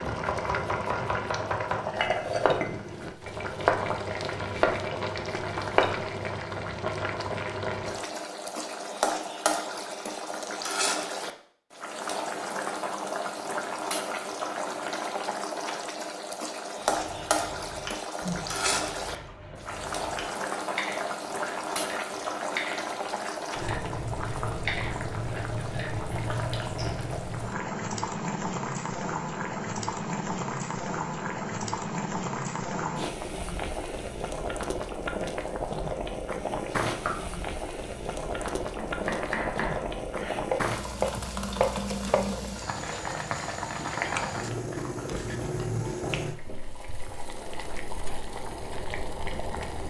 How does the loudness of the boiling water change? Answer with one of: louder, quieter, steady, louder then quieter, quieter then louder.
steady.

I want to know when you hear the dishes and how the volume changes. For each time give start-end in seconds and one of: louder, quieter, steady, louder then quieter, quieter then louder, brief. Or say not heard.
not heard.